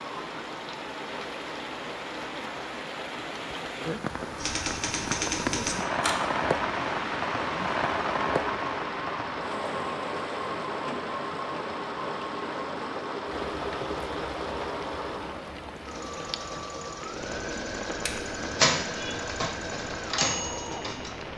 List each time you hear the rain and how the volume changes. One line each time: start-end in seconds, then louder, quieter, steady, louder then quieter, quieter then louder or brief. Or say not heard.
0.0-21.3 louder then quieter.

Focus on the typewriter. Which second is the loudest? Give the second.
19 s.